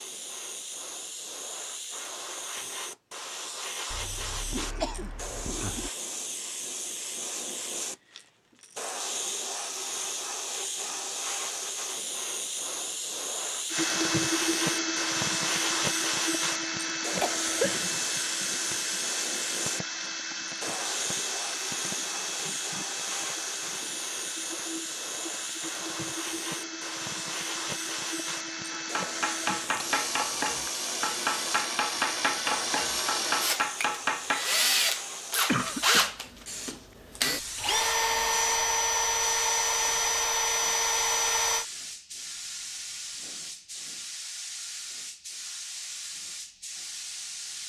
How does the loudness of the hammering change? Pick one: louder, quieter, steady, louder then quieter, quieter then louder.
steady.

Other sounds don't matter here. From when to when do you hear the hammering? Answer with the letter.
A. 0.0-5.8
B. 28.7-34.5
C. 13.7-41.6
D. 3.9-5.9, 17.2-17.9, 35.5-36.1
B.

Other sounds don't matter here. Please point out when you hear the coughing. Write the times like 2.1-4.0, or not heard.
3.9-5.9, 17.2-17.9, 35.5-36.1.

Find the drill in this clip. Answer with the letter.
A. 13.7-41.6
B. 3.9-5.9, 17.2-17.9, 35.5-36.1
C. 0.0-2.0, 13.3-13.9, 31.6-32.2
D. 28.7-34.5
A.